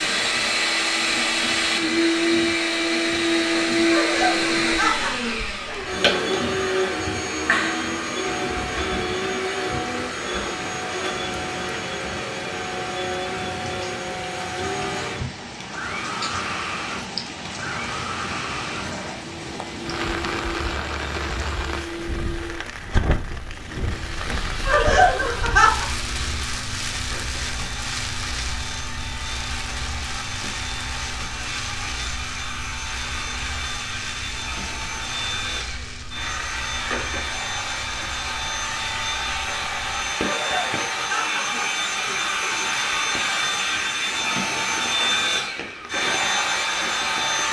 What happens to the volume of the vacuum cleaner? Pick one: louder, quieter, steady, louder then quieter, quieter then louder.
quieter then louder.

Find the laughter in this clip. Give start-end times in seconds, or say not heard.
3.9-6.5, 24.6-25.9, 40.2-42.7.